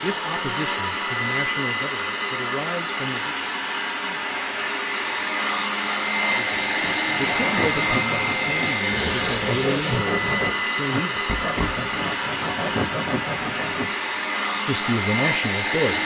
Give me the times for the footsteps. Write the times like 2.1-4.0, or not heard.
not heard.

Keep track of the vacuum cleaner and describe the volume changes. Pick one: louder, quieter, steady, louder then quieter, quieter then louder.
steady.